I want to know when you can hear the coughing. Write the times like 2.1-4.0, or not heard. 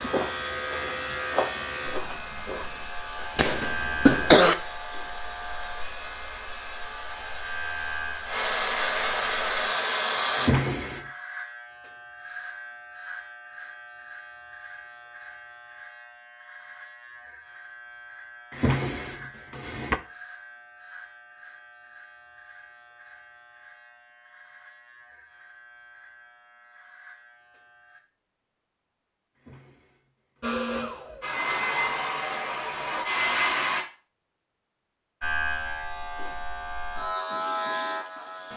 3.4-4.5.